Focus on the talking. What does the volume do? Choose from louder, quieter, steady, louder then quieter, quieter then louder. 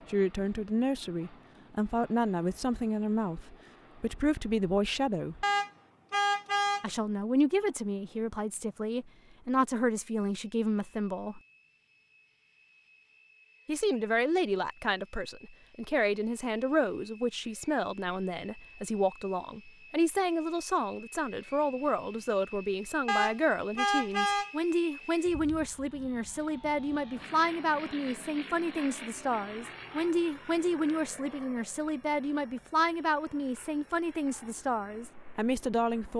steady.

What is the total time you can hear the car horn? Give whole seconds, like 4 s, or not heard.
3 s.